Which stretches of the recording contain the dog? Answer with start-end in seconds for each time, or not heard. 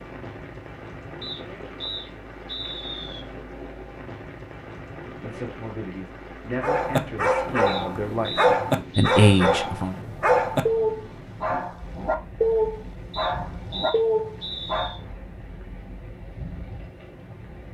6.6-14.9.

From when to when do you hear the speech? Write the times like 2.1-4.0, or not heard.
5.2-9.9.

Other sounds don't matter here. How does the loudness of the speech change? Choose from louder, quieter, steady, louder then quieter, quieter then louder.
louder.